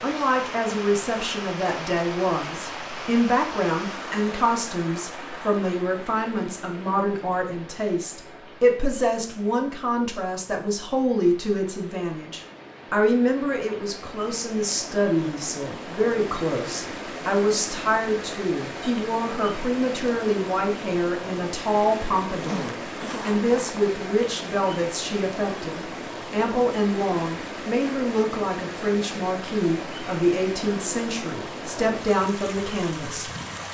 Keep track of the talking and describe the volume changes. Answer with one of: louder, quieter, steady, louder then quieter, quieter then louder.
steady.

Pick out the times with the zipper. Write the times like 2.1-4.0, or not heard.
22.3-23.8.